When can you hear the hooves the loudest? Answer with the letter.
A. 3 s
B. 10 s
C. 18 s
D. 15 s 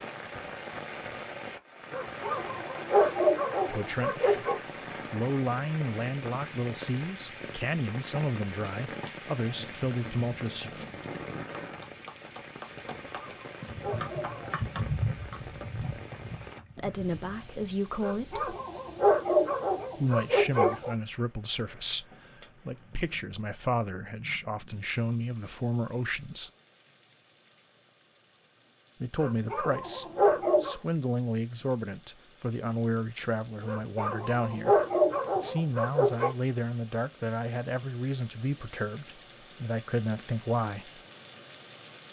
D.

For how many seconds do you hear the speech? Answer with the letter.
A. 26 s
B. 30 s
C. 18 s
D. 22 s
A.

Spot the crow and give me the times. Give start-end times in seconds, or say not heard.
not heard.